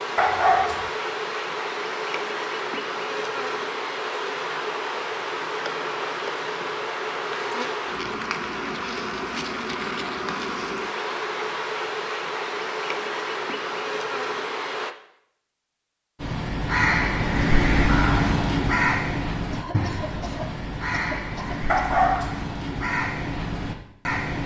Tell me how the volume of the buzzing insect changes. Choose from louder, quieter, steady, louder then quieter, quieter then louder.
steady.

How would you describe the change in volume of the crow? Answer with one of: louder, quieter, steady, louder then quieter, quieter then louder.
quieter.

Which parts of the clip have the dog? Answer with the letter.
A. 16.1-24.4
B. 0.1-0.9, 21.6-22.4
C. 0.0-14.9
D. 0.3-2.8
B.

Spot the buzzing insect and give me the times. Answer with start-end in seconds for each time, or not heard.
0.0-14.9.